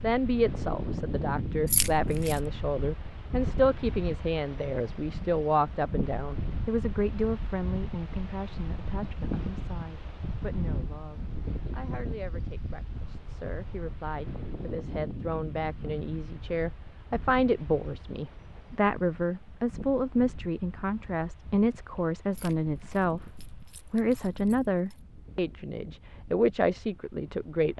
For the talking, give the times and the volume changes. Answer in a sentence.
You can hear the talking from 0.0 to 27.7 s, getting quieter then louder.